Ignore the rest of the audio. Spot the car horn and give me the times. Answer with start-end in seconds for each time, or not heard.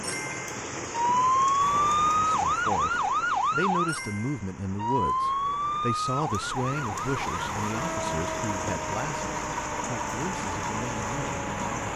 not heard.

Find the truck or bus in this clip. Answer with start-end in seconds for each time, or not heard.
1.6-11.9.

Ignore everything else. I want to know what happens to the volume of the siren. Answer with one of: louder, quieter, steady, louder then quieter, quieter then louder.
quieter.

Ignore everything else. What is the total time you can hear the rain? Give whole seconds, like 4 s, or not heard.
12 s.